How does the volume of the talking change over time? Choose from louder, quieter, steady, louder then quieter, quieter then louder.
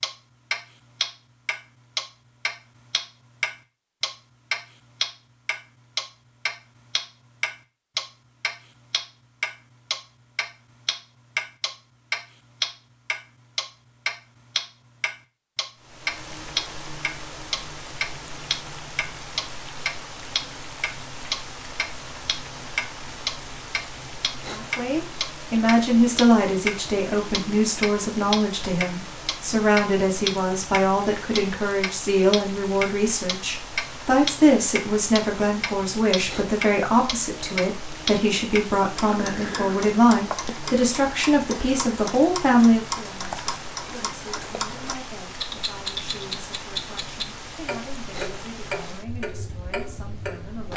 quieter.